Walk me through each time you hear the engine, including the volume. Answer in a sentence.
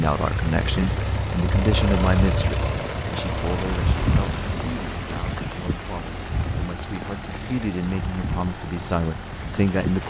The engine can be heard from 0.0 to 10.0 s, getting quieter.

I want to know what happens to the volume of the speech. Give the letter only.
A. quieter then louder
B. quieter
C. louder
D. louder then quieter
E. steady
A.